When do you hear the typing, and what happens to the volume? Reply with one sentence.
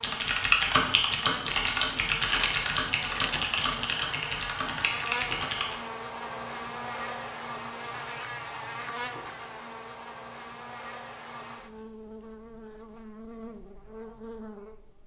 The typing can be heard from 0.0 to 5.8 s, getting quieter.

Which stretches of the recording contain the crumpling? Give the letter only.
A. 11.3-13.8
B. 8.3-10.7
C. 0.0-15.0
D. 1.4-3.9
D.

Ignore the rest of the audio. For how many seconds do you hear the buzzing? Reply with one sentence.
You can hear the buzzing for 15 seconds altogether.